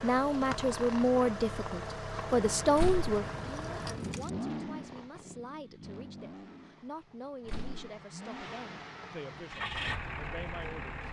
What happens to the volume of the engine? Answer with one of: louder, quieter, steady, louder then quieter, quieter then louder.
quieter then louder.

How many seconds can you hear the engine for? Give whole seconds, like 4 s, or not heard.
11 s.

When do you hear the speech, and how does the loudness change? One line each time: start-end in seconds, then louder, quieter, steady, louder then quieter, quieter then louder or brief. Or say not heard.
0.0-11.0 quieter.